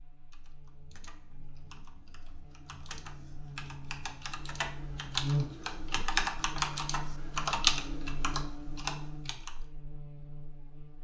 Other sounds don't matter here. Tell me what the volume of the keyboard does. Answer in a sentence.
The volume of the keyboard goes up.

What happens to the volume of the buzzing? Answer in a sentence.
The volume of the buzzing goes up, then down.